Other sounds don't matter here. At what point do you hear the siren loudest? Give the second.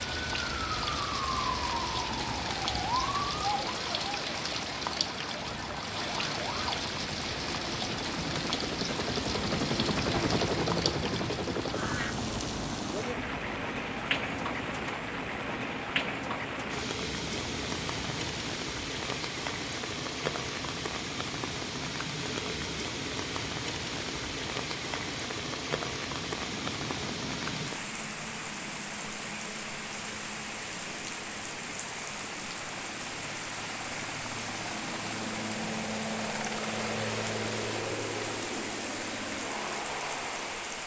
3 s.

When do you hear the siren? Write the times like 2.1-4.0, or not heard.
0.0-6.8.